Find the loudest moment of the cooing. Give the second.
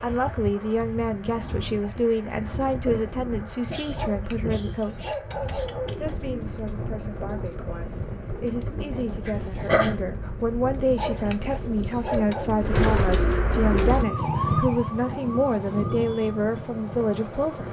13 s.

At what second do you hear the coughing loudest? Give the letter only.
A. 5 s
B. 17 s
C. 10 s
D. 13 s
C.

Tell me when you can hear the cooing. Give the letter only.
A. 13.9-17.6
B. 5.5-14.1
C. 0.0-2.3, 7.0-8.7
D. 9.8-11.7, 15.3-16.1
B.